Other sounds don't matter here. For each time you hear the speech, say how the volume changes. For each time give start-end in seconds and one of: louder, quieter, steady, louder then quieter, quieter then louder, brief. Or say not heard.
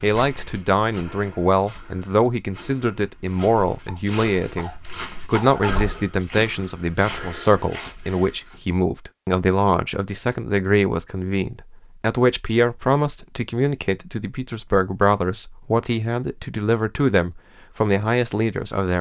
0.0-18.9 steady.